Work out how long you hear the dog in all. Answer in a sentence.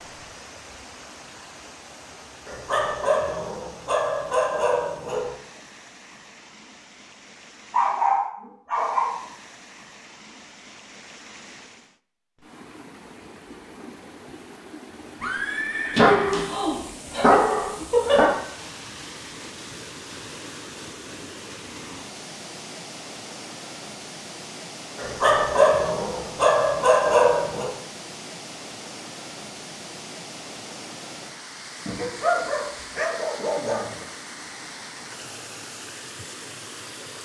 You can hear the dog for 12 seconds altogether.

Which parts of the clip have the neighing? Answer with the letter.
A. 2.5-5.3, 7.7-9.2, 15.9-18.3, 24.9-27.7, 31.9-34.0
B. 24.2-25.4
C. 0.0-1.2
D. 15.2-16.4
D.